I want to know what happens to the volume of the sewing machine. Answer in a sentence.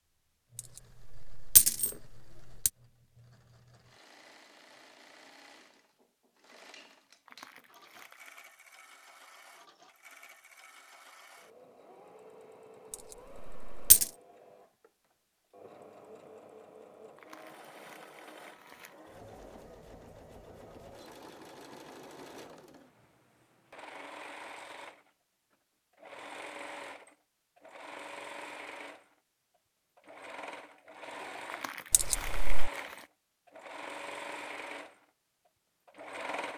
The volume of the sewing machine goes up.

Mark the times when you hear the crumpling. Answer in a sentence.
The crumpling can be heard from 7.2 to 8.4 s, from 17.1 to 19.0 s and from 31.4 to 33.1 s.